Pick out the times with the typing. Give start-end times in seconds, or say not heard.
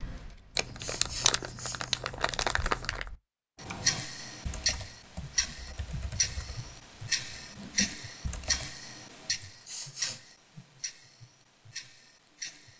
3.5-8.8.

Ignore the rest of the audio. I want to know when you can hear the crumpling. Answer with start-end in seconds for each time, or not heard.
0.6-3.1.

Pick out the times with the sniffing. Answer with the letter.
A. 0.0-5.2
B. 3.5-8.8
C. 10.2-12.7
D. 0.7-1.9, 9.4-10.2
D.